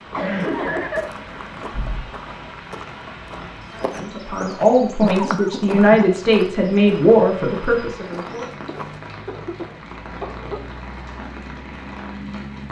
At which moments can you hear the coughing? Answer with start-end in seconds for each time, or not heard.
0.1-2.0, 5.0-6.0, 8.7-10.6.